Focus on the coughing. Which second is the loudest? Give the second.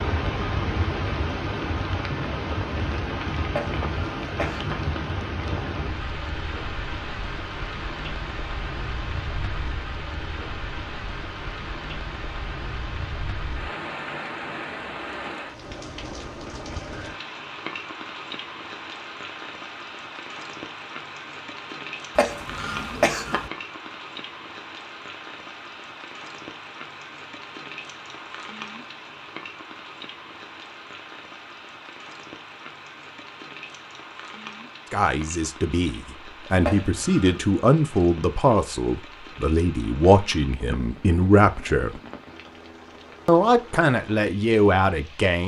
23 s.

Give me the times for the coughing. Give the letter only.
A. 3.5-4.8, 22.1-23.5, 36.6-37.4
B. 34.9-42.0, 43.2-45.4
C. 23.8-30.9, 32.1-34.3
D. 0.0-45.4
A.